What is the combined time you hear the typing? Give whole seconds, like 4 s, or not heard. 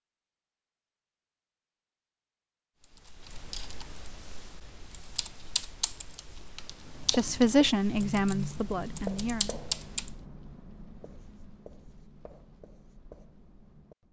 7 s.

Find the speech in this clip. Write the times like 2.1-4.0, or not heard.
7.1-9.6.